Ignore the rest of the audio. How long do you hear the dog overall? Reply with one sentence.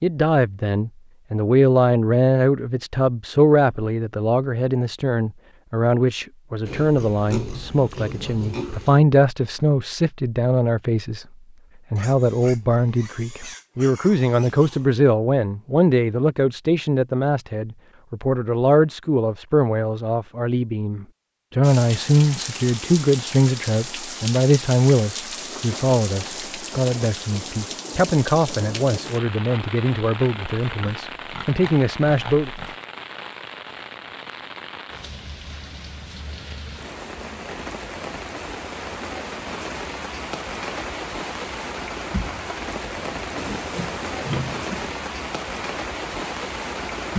The dog can't be heard in this clip.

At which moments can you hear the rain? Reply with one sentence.
You can hear the rain from 21.6 to 47.1 s.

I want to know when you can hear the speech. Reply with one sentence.
The speech can be heard from 0.0 to 11.2 s and from 11.9 to 32.5 s.